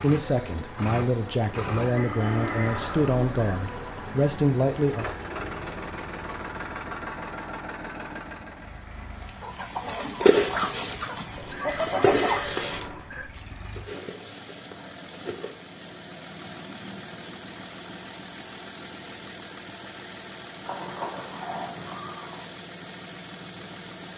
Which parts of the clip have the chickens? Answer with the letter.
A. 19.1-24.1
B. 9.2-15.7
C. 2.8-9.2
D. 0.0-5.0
B.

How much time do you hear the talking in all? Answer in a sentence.
The talking can be heard for 5 seconds in total.